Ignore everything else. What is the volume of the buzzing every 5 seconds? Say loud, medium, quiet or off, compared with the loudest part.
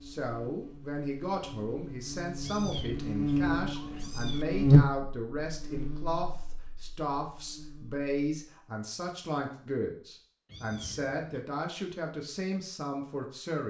loud, quiet, off.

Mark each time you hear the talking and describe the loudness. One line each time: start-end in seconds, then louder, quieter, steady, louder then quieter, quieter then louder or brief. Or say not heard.
0.0-13.6 steady.